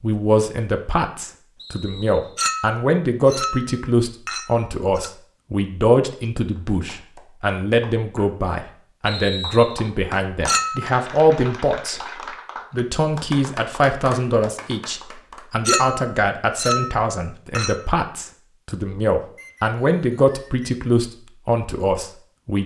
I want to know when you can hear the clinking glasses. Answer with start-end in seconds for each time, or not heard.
2.4-5.1, 10.4-10.9, 15.7-17.8.